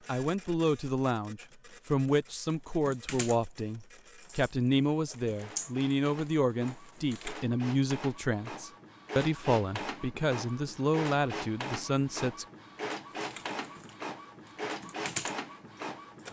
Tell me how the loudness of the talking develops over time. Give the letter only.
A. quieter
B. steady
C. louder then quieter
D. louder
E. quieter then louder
B.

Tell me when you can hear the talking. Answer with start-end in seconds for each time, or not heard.
0.1-12.4.